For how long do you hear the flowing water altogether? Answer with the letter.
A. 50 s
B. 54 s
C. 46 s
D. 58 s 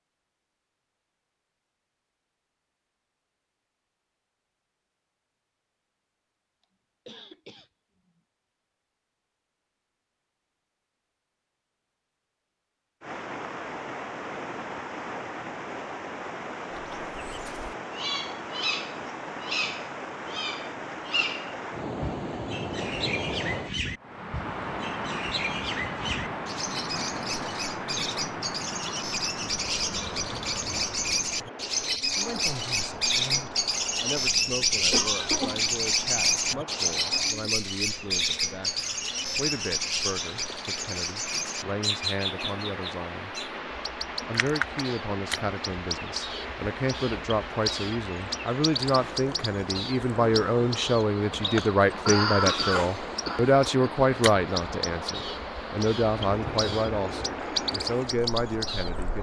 C.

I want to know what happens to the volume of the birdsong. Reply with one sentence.
The loudness of the birdsong goes up, then down.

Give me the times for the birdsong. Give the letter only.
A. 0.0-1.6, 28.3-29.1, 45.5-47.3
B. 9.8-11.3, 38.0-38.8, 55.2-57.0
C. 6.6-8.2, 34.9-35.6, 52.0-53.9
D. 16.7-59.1
D.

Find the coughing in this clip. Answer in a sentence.
The coughing can be heard from 6.6 to 8.2 s, from 34.9 to 35.6 s and from 52.0 to 53.9 s.